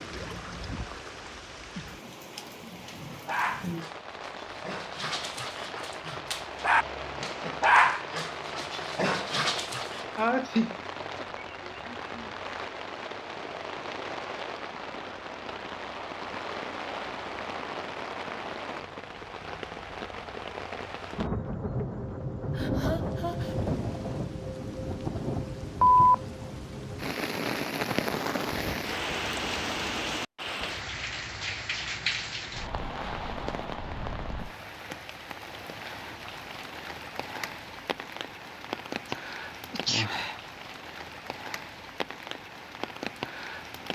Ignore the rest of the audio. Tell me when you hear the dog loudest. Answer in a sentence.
The volume of the dog peaks at 8 seconds.